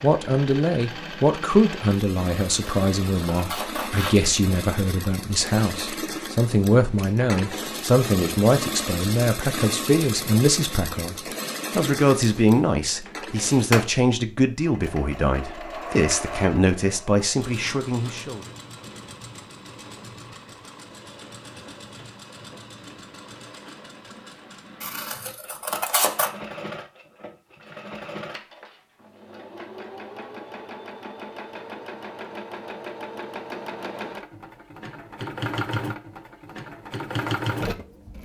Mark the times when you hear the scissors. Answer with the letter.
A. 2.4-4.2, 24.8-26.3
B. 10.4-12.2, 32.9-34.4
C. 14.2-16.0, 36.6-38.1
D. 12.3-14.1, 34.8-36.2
A.